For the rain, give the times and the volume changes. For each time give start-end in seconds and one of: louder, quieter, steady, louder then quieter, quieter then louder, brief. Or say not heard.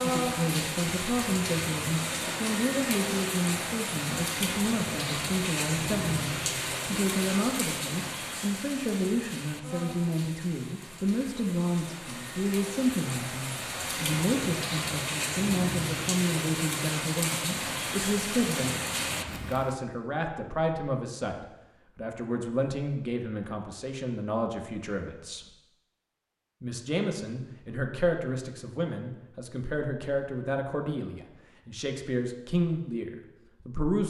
0.0-19.8 quieter then louder.